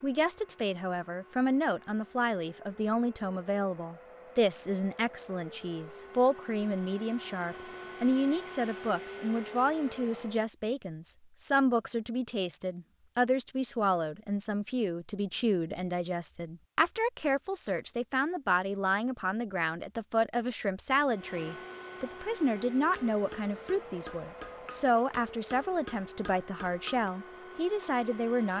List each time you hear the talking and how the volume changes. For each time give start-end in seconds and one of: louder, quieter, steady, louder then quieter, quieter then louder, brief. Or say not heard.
0.0-28.5 steady.